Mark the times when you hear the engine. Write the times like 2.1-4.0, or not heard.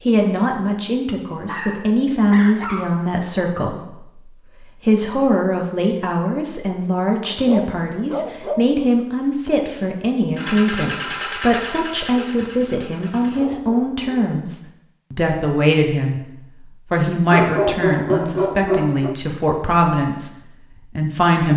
10.3-13.5.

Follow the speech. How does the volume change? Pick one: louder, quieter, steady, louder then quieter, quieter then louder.
steady.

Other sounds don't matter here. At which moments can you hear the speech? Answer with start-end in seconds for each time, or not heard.
0.1-21.5.